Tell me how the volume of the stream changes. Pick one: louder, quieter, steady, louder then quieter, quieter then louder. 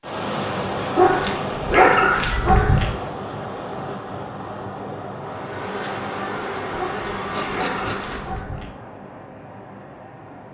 quieter.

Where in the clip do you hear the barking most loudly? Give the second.
2 s.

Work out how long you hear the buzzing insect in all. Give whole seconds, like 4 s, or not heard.
3 s.